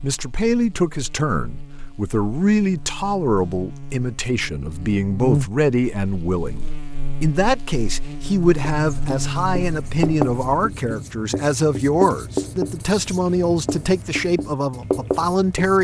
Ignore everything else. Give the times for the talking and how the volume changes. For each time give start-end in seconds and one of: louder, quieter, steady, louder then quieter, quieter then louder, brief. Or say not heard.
0.0-15.7 steady.